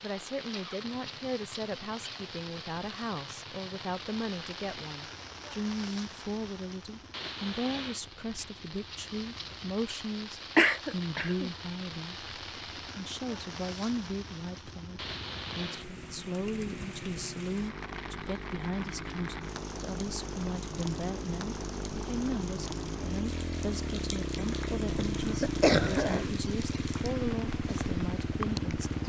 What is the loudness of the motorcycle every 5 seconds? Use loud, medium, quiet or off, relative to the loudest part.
quiet, quiet, quiet, medium, loud, loud.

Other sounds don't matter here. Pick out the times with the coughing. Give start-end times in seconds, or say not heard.
10.6-11.5, 25.2-26.4.